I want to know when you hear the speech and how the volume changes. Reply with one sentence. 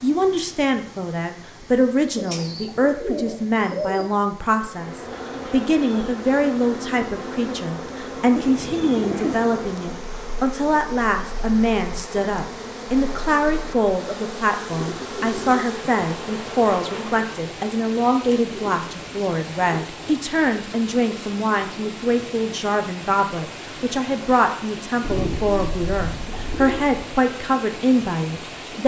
You can hear the speech from 0.0 to 28.8 s, at a steady volume.